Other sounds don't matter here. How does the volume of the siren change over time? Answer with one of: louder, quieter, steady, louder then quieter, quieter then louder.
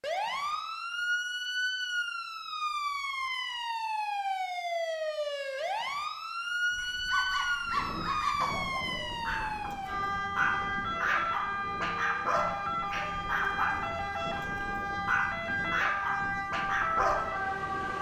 steady.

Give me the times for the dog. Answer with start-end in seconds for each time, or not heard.
6.8-17.3.